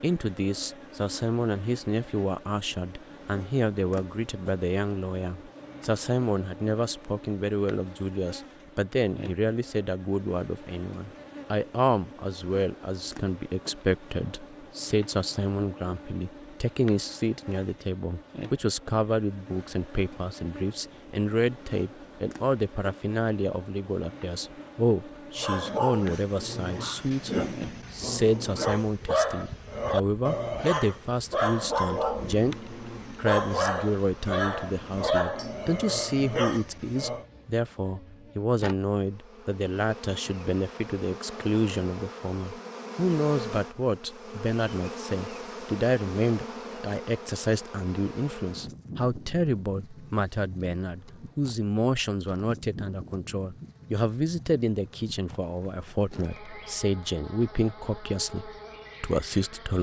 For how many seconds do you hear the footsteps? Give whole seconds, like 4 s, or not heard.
not heard.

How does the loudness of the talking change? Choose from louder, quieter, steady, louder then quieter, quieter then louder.
steady.